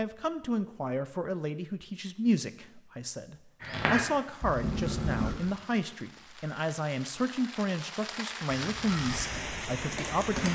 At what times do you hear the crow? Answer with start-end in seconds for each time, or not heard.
3.6-5.3, 8.4-10.4.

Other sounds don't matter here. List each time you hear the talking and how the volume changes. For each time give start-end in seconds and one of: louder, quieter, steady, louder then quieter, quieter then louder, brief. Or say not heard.
0.0-10.4 steady.